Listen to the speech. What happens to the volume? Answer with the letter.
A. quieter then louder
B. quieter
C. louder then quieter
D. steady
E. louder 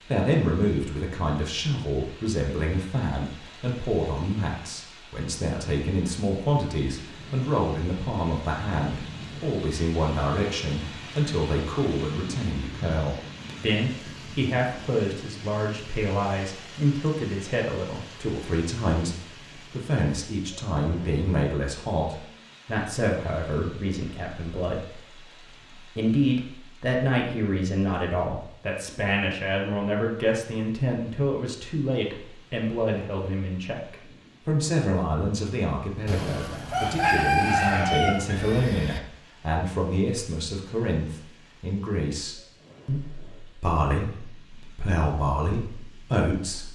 D.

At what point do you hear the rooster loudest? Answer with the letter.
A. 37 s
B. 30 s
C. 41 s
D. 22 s
A.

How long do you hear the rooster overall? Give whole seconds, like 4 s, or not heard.
3 s.